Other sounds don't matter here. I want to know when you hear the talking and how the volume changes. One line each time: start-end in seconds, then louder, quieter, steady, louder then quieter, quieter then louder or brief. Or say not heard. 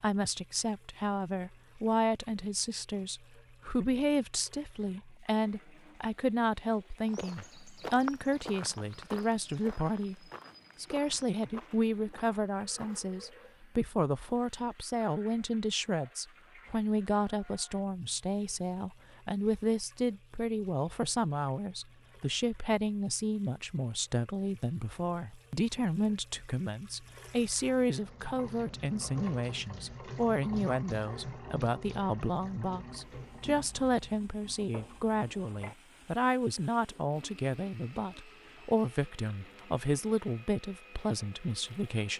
0.0-10.2 steady
10.8-42.1 steady.